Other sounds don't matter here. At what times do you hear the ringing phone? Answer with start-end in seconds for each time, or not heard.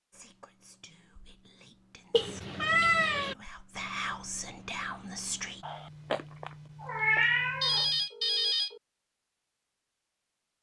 7.6-8.8.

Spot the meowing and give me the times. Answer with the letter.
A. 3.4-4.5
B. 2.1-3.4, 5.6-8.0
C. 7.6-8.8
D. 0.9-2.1
B.